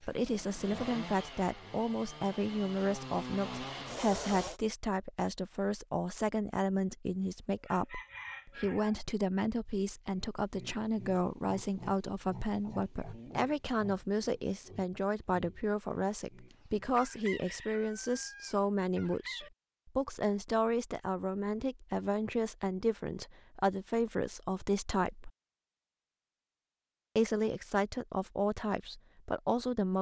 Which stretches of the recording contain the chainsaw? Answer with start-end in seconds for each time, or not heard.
0.0-4.6.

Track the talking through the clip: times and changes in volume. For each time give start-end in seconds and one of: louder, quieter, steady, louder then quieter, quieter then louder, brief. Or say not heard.
0.1-25.3 steady
27.1-29.9 brief.